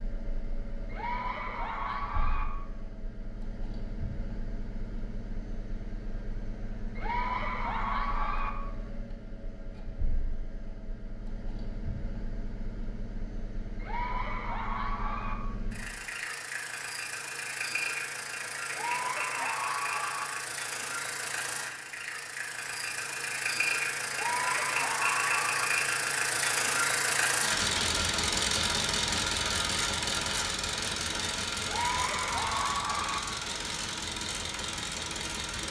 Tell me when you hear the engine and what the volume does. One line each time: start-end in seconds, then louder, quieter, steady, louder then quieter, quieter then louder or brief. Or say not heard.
0.0-35.6 louder.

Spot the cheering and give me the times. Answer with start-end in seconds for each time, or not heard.
0.9-2.5, 7.0-8.5, 13.8-15.3, 18.7-20.2, 24.1-25.7, 31.6-33.2.